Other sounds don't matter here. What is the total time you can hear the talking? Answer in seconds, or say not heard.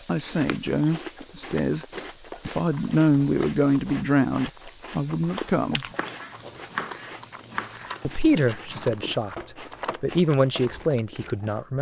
9 s.